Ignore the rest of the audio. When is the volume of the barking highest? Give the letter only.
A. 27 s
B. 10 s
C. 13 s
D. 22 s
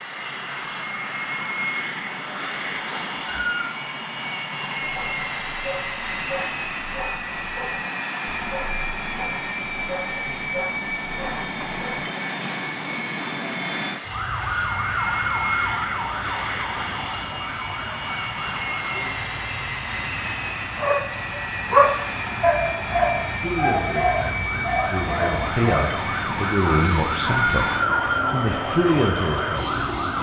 D.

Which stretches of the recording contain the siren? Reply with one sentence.
The siren can be heard from 14.1 to 30.1 s.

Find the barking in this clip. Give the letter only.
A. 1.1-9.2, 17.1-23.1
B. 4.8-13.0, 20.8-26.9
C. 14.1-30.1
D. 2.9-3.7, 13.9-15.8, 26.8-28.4
B.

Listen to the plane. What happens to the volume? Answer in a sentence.
The volume of the plane stays about the same.